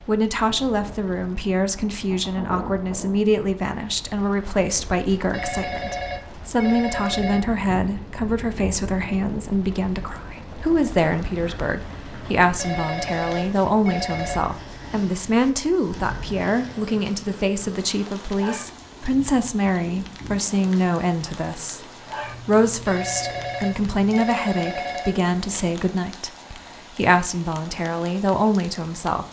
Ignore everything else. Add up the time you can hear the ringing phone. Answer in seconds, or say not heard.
7 s.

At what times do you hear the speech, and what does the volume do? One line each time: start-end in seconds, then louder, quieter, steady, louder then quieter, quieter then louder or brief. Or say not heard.
0.1-29.2 steady.